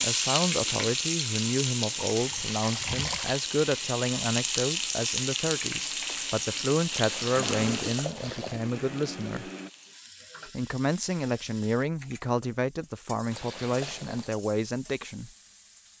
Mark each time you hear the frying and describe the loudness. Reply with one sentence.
You can hear the frying from 0.0 to 15.9 s, getting quieter.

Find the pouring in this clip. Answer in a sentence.
The pouring can be heard from 2.0 to 3.4 s, from 6.9 to 8.7 s and from 13.3 to 14.4 s.